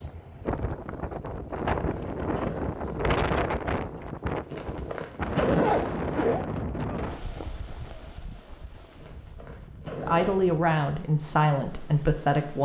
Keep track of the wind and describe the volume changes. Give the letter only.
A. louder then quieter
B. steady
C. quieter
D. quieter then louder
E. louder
C.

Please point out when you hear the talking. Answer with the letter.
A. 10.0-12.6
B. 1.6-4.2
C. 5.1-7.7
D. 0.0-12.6
A.